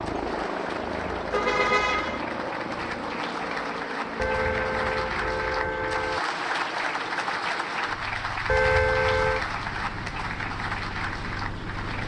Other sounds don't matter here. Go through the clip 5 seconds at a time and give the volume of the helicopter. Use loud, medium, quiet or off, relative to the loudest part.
loud, medium, medium.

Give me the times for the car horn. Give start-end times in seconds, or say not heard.
1.3-2.2, 4.2-6.2, 8.4-9.4.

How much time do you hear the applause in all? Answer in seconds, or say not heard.
12 s.